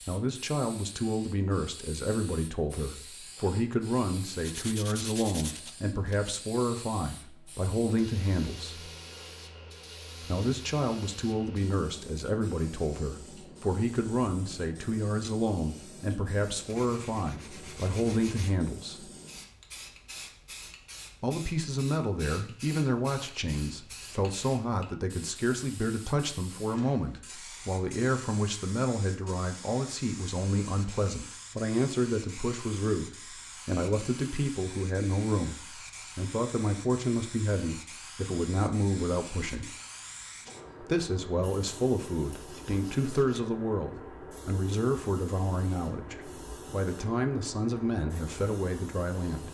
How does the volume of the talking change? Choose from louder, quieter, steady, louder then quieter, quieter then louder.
steady.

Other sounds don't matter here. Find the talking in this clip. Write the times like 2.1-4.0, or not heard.
0.1-8.9, 10.2-19.1, 21.2-39.8, 40.8-49.5.